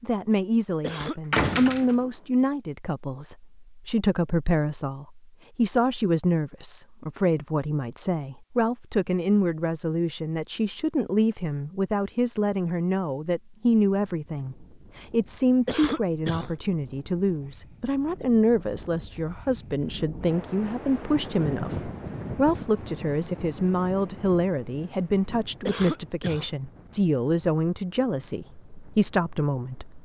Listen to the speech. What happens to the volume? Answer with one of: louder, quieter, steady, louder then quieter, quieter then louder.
steady.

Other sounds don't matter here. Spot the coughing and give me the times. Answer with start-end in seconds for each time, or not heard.
0.8-1.7, 15.7-16.5, 25.6-26.5.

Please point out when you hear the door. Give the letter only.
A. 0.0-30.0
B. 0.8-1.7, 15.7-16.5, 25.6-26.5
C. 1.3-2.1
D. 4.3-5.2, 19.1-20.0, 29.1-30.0
C.